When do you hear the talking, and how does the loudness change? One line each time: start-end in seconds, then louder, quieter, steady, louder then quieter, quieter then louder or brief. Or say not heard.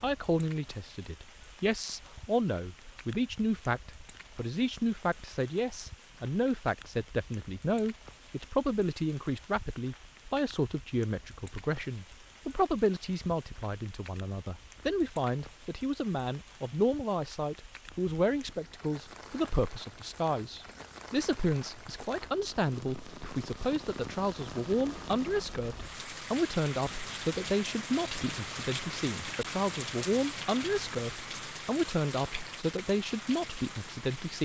0.0-34.4 steady.